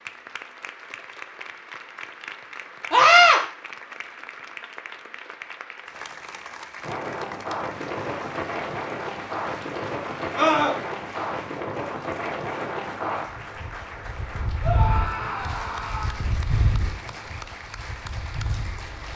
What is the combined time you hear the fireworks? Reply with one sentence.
You can't hear the fireworks here.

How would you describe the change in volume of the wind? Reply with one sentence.
The loudness of the wind stays about the same.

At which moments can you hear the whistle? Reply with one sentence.
You can't hear the whistle here.